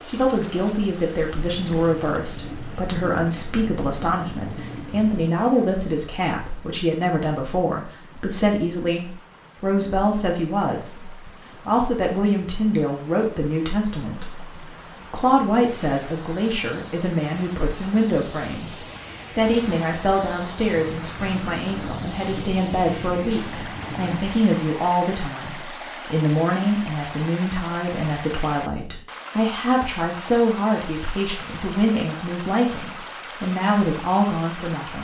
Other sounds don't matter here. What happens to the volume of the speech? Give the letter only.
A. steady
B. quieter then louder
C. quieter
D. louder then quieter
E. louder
A.